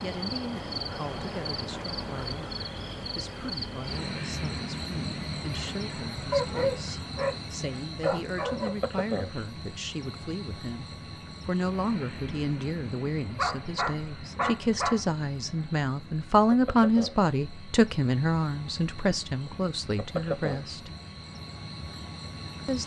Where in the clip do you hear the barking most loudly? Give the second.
7 s.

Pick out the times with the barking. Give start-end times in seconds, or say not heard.
6.3-7.4, 8.0-8.8, 13.3-15.0.